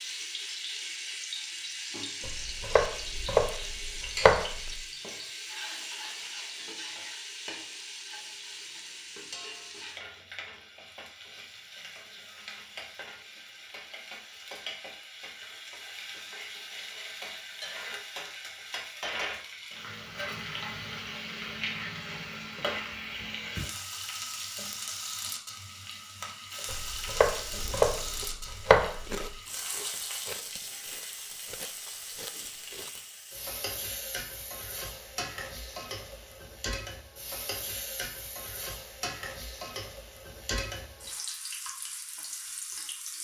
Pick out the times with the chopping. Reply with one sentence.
The chopping can be heard from 2.2 to 4.8 s and from 26.6 to 29.2 s.